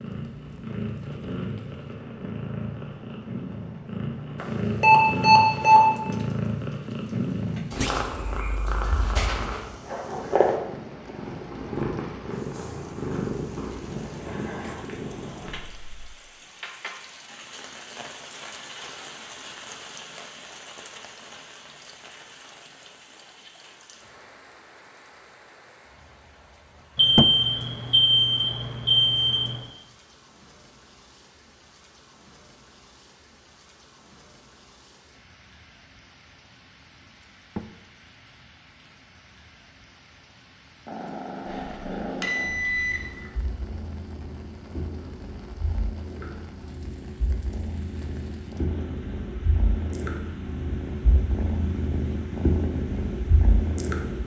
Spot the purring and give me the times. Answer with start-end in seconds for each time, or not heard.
0.0-16.1, 40.9-54.2.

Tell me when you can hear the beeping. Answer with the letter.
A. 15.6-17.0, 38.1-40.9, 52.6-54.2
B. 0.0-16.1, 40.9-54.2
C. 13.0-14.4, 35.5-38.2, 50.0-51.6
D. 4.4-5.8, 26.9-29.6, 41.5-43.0
D.